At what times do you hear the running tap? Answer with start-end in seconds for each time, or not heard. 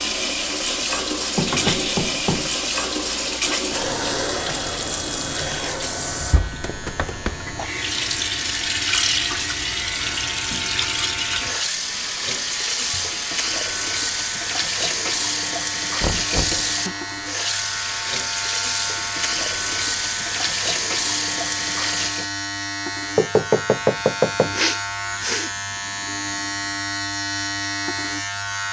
0.0-22.3.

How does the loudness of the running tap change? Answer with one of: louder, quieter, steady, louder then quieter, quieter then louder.
steady.